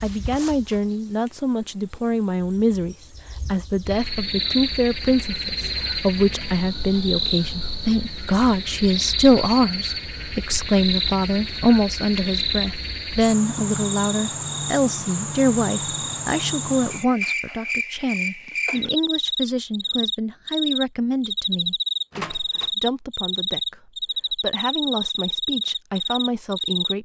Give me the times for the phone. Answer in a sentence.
You can't hear the phone here.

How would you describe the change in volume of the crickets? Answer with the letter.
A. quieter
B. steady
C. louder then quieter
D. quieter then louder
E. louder
E.